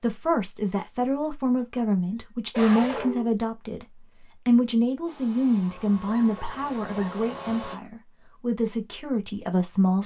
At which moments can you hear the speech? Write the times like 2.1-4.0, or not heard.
0.0-3.9, 4.5-10.0.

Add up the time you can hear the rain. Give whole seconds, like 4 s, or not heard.
not heard.